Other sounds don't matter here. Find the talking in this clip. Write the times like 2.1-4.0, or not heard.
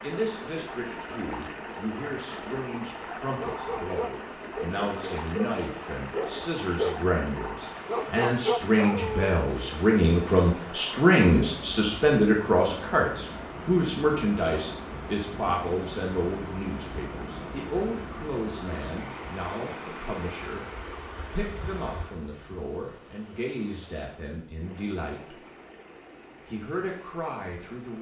0.0-20.7, 21.3-25.4, 26.4-27.9.